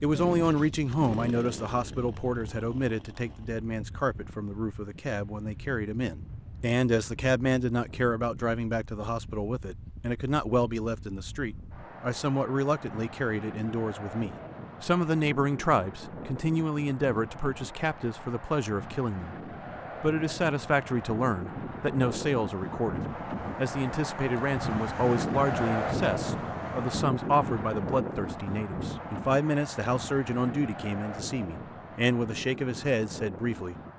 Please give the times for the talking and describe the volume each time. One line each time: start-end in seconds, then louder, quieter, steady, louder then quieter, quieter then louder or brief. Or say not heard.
0.0-19.4 steady
20.0-33.9 steady.